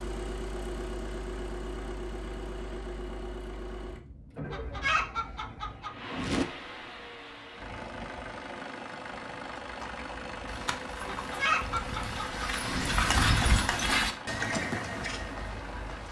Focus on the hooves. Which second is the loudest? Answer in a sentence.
The loudest moment of the hooves is at 13 seconds.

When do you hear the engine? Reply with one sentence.
The engine can be heard from 0.0 to 16.0 s.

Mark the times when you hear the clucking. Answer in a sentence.
You can hear the clucking from 4.5 to 6.5 s and from 11.0 to 12.9 s.